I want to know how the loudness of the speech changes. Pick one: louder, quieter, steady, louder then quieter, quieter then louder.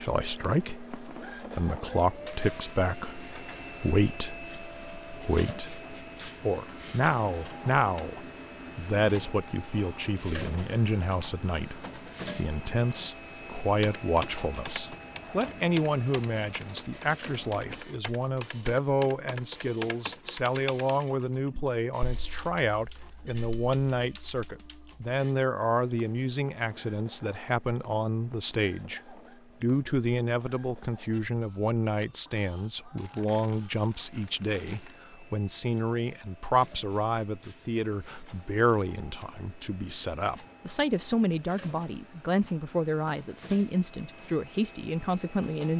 steady.